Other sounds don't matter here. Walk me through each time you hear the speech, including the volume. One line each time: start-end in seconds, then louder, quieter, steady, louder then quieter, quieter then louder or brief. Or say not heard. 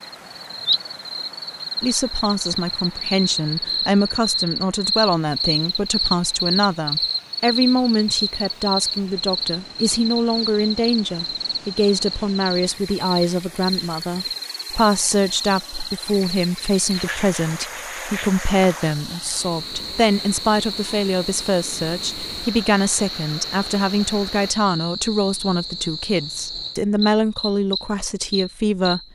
1.8-29.0 steady.